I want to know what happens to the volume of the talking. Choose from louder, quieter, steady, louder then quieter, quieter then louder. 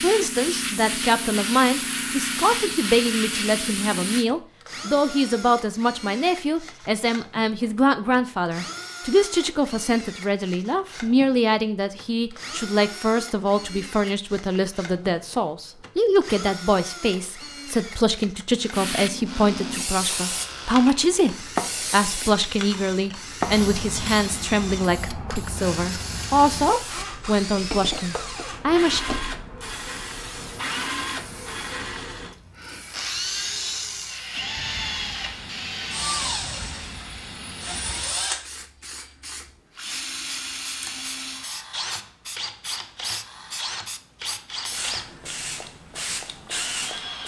steady.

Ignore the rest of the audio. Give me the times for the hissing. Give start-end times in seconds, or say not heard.
0.0-4.2, 18.7-47.2.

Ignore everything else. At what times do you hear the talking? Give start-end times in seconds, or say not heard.
0.0-29.0.